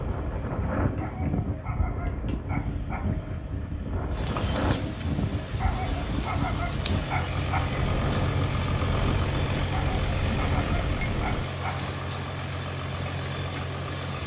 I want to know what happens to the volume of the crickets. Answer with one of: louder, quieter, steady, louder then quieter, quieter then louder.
steady.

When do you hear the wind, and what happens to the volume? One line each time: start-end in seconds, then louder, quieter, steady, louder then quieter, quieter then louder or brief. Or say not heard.
0.0-11.4 steady.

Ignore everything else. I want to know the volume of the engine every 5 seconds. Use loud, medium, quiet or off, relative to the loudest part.
quiet, loud, loud.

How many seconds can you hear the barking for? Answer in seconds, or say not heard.
6 s.